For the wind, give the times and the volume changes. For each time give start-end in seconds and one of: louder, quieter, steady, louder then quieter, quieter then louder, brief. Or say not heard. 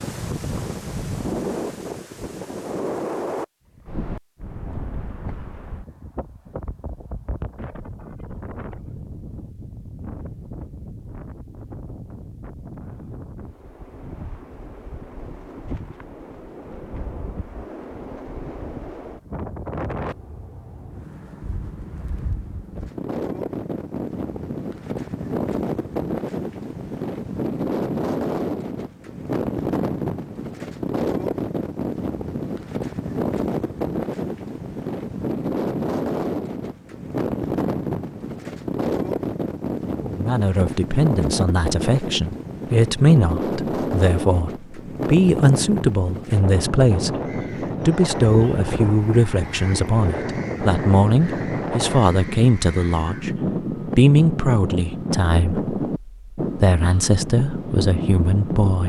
0.0-58.8 louder.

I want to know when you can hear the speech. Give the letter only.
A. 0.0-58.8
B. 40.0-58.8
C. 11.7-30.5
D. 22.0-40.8
B.